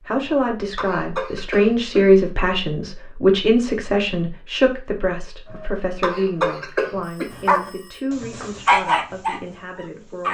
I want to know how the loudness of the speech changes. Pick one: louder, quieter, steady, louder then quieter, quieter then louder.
quieter.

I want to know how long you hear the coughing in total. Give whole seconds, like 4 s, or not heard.
4 s.